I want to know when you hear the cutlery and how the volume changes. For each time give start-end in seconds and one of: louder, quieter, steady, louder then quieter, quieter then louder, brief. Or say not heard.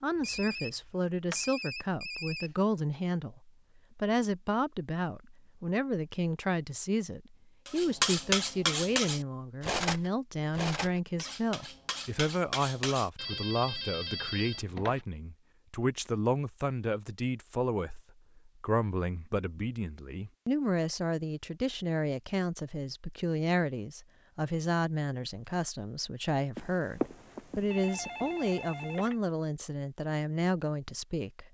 7.7-13.1 quieter then louder.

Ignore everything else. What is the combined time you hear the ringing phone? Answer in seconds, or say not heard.
6 s.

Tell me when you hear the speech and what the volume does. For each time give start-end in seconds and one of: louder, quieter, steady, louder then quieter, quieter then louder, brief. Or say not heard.
0.0-31.4 steady.